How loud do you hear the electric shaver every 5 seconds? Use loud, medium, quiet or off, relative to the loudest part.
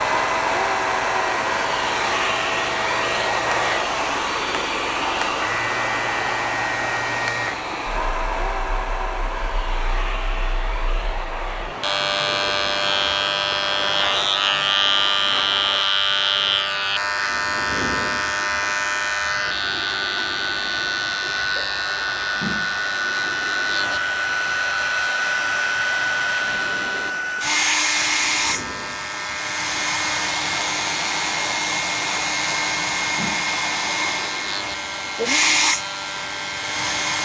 medium, medium, loud, loud, medium, medium, medium, medium.